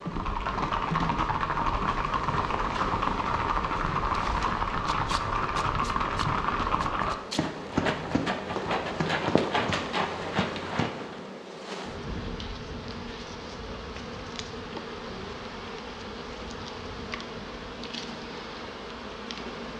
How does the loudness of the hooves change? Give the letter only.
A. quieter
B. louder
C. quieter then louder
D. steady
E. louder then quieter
D.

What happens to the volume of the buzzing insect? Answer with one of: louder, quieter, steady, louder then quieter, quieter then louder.
steady.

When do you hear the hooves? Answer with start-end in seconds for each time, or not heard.
0.0-11.2.